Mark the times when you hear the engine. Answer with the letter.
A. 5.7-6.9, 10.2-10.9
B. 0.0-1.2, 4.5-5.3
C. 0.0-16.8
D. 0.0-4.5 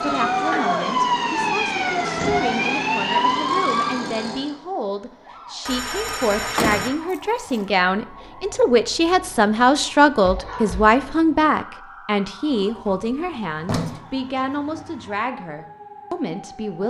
D.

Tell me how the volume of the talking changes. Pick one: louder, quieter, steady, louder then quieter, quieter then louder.
louder then quieter.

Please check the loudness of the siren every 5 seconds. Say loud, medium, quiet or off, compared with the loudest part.
loud, quiet, quiet, quiet.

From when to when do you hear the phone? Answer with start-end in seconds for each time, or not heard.
5.7-6.9, 10.2-10.9.